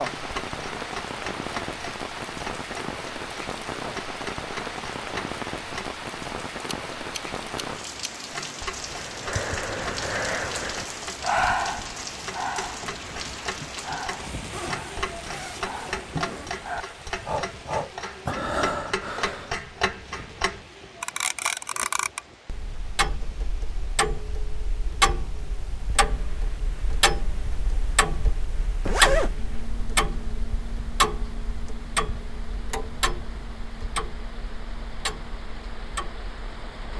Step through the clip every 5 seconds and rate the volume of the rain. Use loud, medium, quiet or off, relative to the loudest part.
loud, loud, loud, medium, quiet, quiet, quiet, medium.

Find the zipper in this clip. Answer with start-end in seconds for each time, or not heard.
14.5-16.5, 28.9-29.4.